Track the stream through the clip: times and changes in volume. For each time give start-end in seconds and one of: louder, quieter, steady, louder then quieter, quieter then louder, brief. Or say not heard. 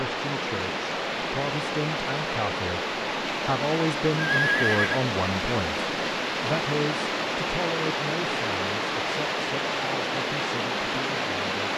0.0-11.7 steady.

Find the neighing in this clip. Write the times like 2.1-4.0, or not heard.
4.2-5.0.